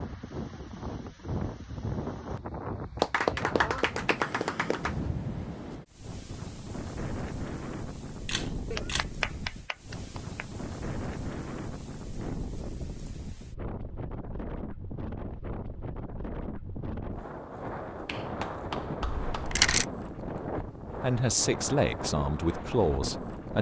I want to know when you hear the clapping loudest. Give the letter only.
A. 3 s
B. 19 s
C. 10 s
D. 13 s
A.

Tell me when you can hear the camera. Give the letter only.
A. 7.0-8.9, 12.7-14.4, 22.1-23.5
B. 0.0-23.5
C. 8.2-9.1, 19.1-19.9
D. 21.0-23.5
C.